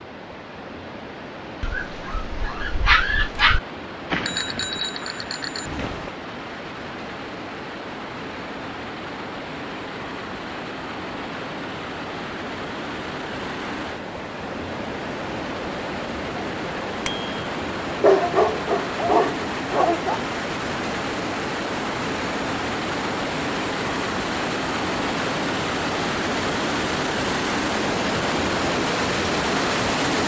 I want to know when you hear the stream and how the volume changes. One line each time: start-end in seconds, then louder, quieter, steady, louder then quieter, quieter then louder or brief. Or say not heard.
0.0-30.2 louder.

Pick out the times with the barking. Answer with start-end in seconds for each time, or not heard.
1.6-3.6, 18.0-20.2.